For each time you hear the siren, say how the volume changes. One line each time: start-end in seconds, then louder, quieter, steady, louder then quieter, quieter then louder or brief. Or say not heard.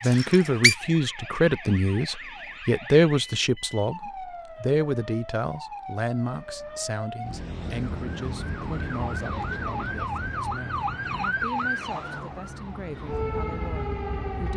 0.0-14.5 louder.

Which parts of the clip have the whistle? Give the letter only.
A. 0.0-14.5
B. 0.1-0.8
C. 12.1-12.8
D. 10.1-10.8
B.